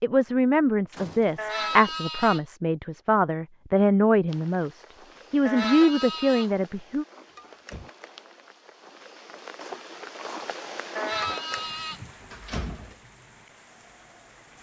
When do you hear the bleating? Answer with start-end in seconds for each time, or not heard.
1.4-2.4, 5.5-6.5, 10.9-12.0.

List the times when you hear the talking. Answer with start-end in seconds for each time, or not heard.
0.0-7.0.